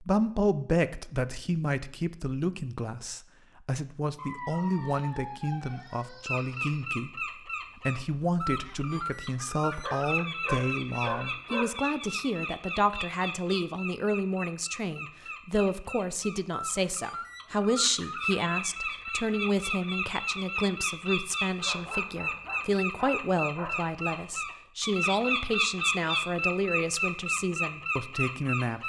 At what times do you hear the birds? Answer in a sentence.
You can hear the birds from 6.2 to 28.8 s.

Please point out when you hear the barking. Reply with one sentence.
You can hear the barking from 4.2 to 6.8 s, from 9.8 to 11.8 s and from 21.6 to 23.9 s.